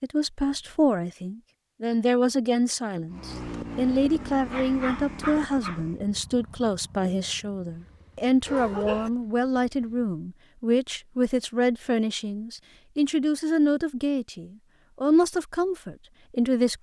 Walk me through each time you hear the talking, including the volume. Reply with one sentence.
The talking can be heard from 0.0 to 16.7 s, at a steady volume.